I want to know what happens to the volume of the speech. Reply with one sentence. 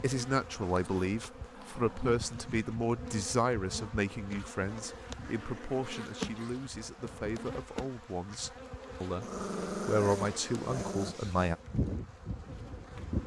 The loudness of the speech goes down, then up.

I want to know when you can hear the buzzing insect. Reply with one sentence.
The buzzing insect can be heard from 0.0 to 13.2 s.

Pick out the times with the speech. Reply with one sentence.
You can hear the speech from 0.0 to 11.6 s.